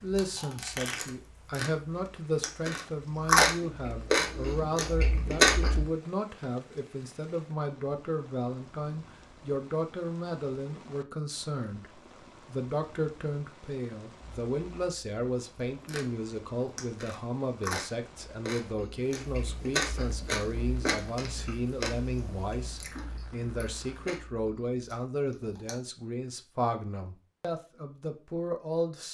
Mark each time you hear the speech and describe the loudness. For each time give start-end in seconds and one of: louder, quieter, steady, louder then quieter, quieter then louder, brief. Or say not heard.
0.0-29.0 steady.